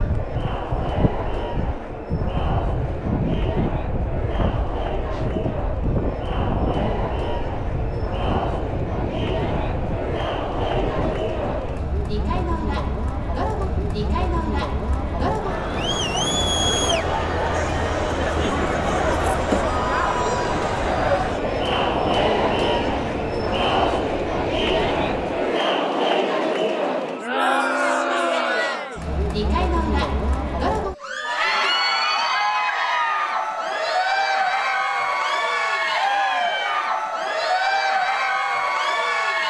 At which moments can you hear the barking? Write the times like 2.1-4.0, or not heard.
not heard.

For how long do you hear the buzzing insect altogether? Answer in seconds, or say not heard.
not heard.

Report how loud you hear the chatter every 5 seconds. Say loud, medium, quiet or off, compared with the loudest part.
medium, medium, medium, loud, loud, loud, loud, loud.